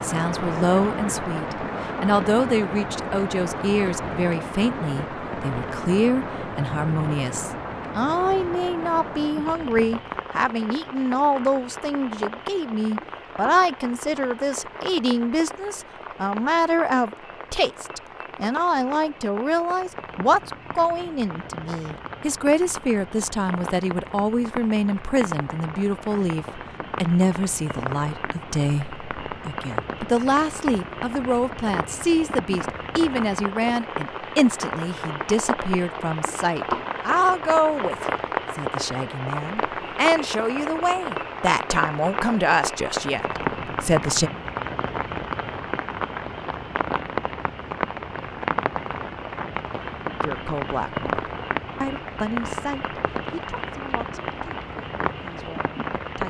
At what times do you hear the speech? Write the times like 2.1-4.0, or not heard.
0.0-44.3, 50.2-56.2.